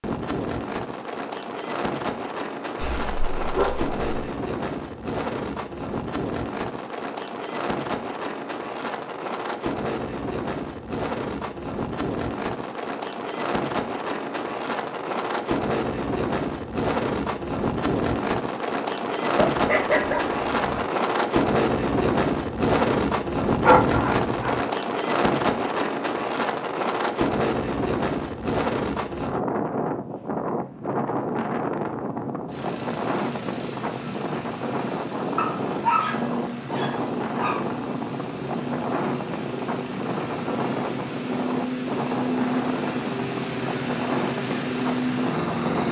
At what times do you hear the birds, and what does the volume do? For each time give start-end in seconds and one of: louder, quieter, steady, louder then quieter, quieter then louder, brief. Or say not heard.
not heard.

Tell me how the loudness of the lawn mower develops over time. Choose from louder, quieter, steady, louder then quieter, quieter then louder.
louder.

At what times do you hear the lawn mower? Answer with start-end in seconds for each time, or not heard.
32.5-45.8.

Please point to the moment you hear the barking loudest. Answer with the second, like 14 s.
24 s.